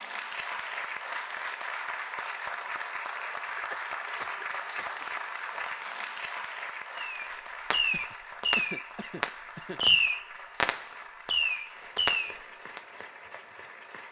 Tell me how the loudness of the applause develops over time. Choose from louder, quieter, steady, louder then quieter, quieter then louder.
quieter.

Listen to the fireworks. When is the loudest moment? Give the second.
10 s.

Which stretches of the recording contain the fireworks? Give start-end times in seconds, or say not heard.
7.0-12.8.